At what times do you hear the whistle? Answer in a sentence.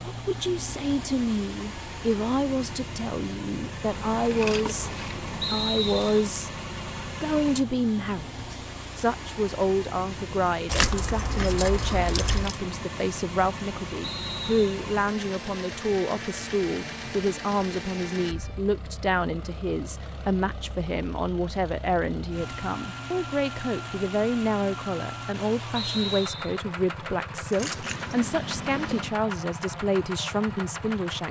The whistle can be heard from 5.4 to 6.2 s, from 14.0 to 14.8 s and from 25.8 to 26.6 s.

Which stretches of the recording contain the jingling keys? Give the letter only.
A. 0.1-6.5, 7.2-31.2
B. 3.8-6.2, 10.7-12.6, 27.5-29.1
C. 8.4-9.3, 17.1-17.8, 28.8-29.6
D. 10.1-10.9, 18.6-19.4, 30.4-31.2
B.